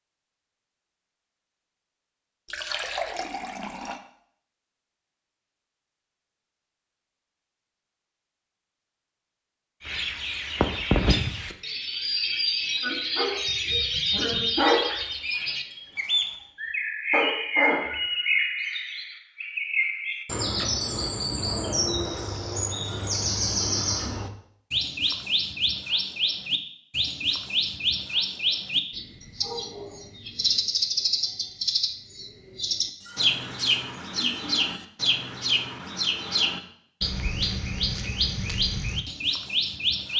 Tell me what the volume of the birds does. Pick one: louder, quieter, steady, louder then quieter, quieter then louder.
steady.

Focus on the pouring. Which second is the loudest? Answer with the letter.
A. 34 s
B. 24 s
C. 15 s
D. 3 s
D.